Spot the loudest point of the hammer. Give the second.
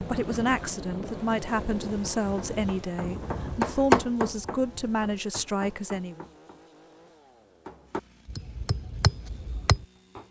4 s.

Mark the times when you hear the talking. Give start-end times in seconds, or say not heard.
0.0-6.2.